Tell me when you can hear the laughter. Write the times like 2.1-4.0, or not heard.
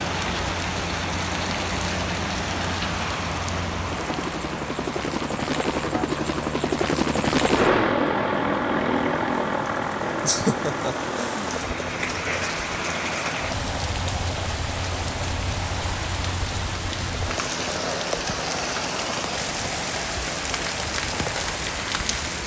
10.2-11.5.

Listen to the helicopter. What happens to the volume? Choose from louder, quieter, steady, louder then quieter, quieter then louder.
louder then quieter.